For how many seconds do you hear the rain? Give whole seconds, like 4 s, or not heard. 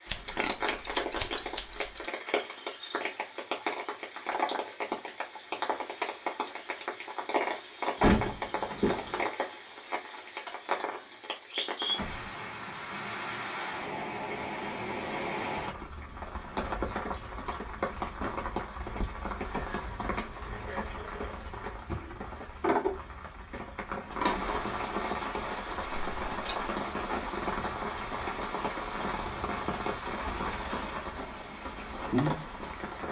33 s.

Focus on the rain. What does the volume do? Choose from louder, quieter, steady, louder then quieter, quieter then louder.
steady.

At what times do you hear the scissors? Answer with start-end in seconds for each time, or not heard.
0.1-2.0, 15.9-17.3, 24.1-24.6.